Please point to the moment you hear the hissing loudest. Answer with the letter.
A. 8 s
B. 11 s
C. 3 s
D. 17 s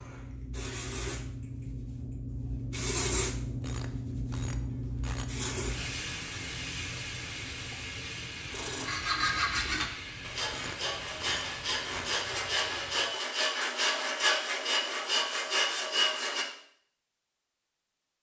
C.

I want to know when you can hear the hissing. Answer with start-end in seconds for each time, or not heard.
0.0-13.2.